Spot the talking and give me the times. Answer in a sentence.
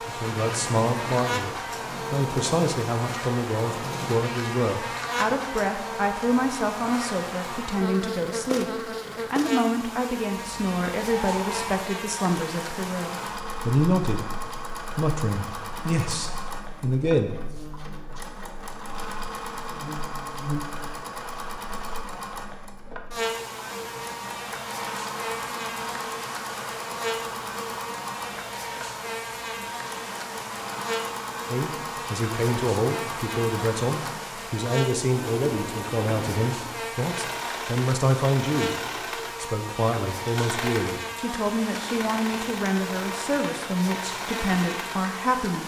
The talking can be heard from 0.1 to 17.3 s, from 31.4 to 38.8 s and from 39.4 to 45.6 s.